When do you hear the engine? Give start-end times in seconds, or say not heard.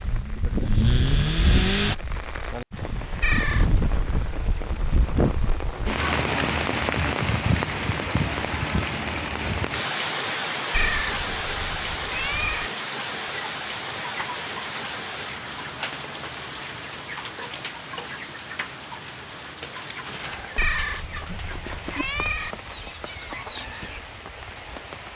0.0-1.9.